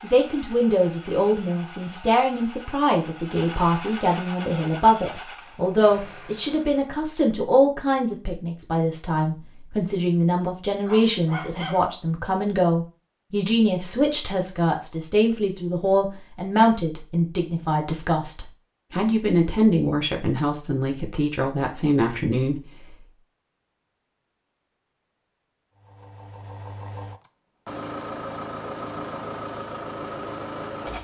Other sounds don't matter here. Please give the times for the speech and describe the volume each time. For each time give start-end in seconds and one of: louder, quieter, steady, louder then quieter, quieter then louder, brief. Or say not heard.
0.0-22.6 steady.